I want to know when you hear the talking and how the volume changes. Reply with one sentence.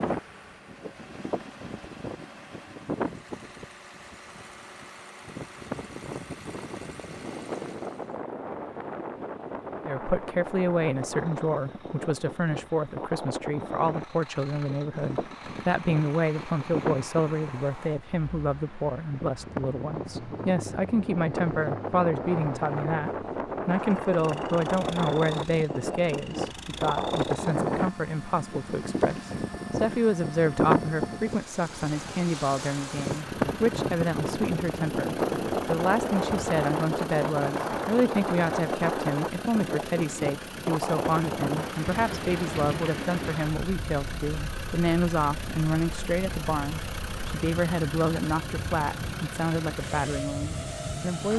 You can hear the talking from 9.8 to 51.3 s, at a steady volume.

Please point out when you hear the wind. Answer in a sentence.
The wind can be heard from 0.0 to 51.3 s.